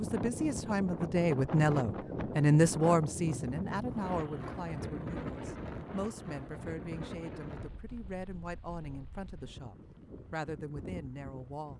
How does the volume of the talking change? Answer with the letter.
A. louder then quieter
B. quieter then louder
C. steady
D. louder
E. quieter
E.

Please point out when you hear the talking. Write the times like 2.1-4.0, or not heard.
0.0-11.7.